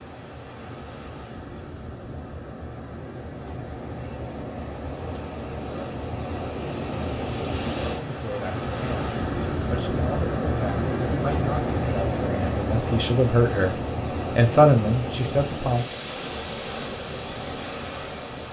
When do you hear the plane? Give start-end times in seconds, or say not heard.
not heard.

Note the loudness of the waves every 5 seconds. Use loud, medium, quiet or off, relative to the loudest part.
medium, loud, loud, medium.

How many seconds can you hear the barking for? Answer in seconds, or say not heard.
not heard.